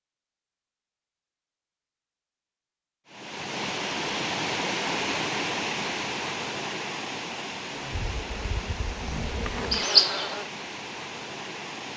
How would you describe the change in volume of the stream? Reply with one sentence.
The volume of the stream goes down.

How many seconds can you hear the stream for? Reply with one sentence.
You can hear the stream for 9 seconds altogether.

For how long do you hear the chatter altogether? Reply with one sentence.
You can't hear the chatter here.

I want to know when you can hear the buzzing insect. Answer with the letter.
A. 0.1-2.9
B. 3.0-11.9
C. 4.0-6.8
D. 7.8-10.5
D.